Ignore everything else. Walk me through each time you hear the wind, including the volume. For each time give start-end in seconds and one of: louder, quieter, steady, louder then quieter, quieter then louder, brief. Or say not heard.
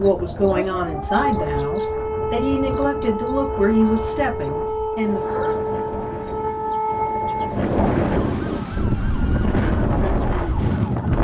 0.0-11.1 louder.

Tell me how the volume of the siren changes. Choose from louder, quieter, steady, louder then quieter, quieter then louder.
quieter.